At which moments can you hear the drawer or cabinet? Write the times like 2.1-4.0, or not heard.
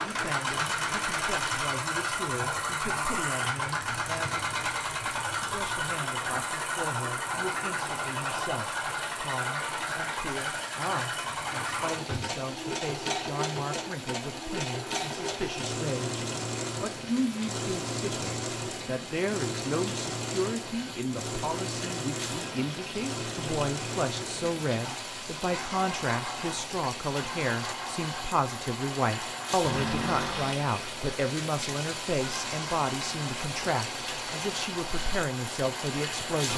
11.2-12.4, 29.6-30.6.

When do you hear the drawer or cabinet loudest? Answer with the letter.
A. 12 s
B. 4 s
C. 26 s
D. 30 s
D.